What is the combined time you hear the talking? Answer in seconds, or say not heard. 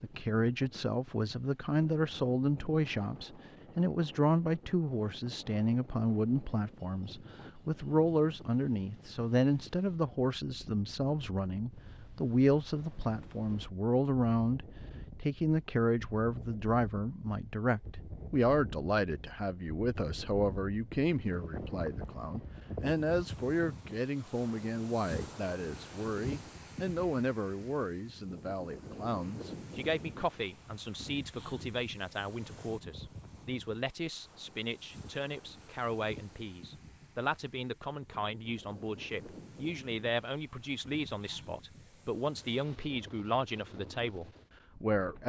45 s.